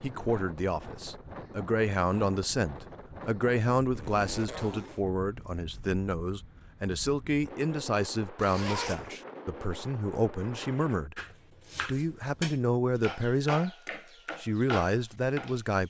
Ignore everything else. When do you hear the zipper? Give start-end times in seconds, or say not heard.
4.0-5.0, 8.3-9.1.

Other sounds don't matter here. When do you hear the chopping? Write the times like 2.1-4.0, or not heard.
11.2-15.6.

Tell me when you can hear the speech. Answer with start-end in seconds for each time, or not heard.
0.0-11.2, 11.8-13.8, 14.3-15.8.